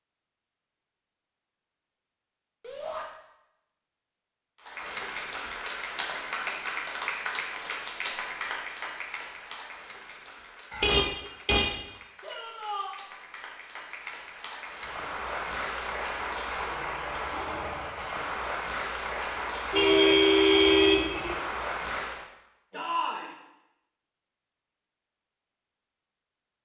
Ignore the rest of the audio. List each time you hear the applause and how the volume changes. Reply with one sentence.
You can hear the applause from 4.5 to 22.2 s, getting quieter then louder.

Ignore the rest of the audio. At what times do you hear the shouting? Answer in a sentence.
The shouting can be heard from 2.6 to 3.0 s, from 12.2 to 12.9 s and from 22.7 to 23.4 s.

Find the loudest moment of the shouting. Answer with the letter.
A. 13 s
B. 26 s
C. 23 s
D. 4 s
C.